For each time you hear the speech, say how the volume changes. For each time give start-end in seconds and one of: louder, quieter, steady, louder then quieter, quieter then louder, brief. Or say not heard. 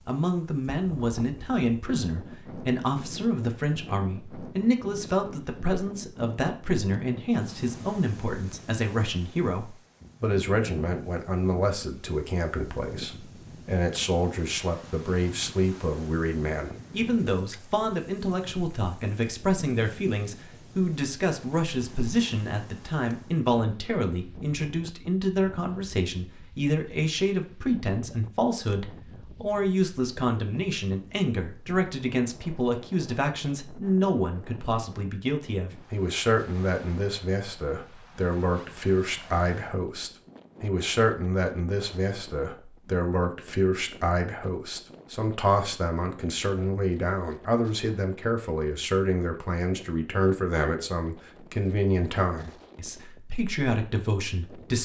0.1-54.8 steady.